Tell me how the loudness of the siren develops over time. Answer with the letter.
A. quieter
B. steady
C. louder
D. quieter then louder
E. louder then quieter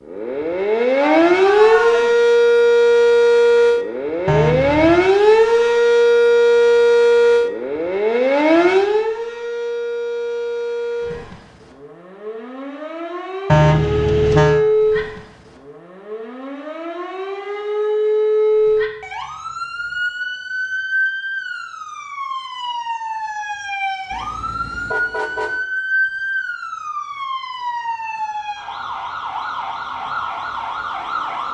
A.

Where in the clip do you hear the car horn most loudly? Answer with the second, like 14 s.
14 s.